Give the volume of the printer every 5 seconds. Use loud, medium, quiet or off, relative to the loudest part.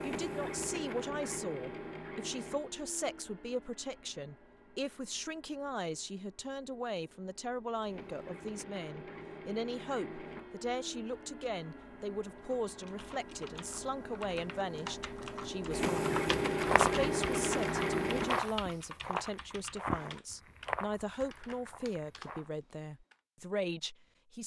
medium, quiet, quiet, loud, off.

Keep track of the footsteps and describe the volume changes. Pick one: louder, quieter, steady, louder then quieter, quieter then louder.
louder then quieter.